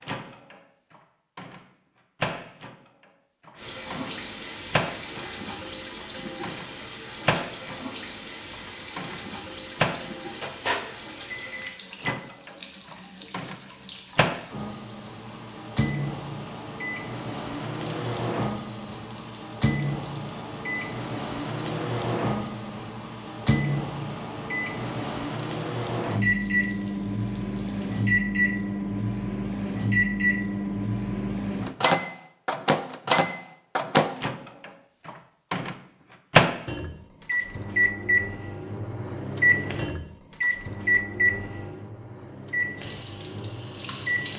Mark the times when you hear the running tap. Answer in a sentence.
You can hear the running tap from 3.5 to 28.1 s and from 42.8 to 44.3 s.